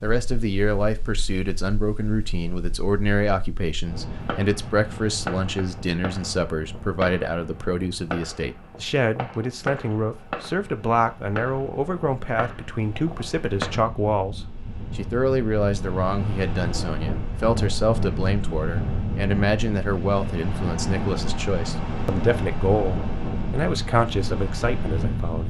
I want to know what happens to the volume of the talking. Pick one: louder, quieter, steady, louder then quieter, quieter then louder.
steady.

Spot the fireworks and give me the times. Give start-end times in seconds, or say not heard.
4.2-13.8.